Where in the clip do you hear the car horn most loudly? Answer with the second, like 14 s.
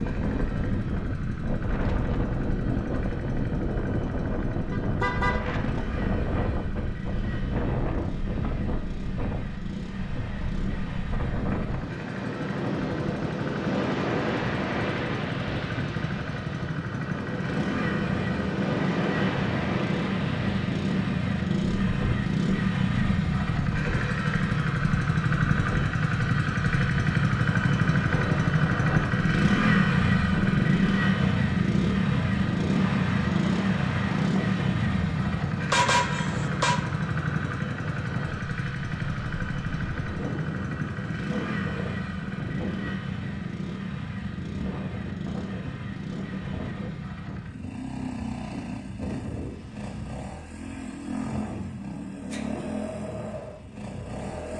36 s.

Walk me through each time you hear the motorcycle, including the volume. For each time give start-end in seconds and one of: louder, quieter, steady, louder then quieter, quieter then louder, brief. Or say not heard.
0.0-54.5 louder then quieter.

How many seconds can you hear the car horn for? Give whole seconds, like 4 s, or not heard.
2 s.